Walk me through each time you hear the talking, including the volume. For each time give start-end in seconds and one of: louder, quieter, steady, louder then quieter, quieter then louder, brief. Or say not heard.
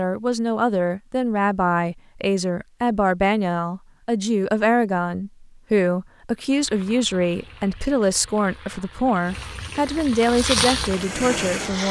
0.0-11.8 steady.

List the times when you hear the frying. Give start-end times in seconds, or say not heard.
6.3-11.8.